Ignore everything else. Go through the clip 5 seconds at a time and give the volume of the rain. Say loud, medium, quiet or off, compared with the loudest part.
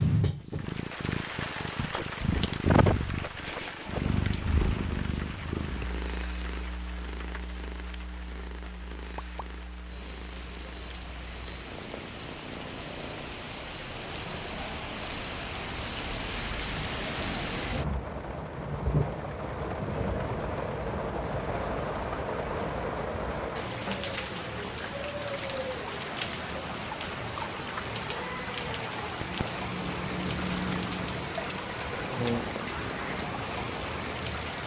loud, quiet, medium, loud, loud, loud, loud.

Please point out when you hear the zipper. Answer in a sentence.
The zipper can't be heard in this clip.